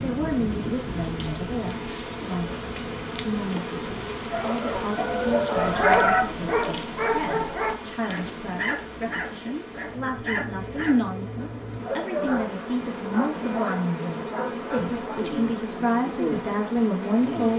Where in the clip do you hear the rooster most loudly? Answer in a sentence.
The loudest moment of the rooster is at 6 seconds.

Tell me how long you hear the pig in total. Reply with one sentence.
The pig can't be heard in this clip.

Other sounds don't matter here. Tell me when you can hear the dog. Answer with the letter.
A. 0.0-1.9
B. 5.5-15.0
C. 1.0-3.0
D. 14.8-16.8
B.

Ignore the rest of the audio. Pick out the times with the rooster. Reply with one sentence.
You can hear the rooster from 4.3 to 6.2 s.